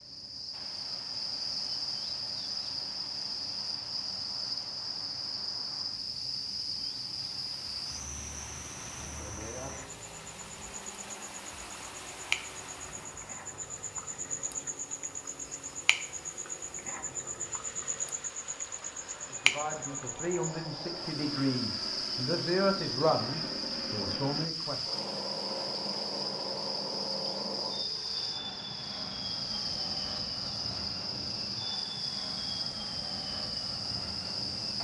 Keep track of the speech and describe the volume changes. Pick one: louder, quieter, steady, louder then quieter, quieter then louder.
louder then quieter.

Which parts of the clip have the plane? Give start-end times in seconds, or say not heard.
0.0-34.7.